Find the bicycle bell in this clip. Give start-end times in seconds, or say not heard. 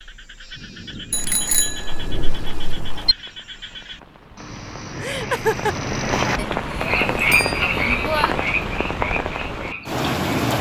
1.1-3.1, 6.3-8.3.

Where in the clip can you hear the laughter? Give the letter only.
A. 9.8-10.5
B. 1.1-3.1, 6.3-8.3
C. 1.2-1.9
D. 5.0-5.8
D.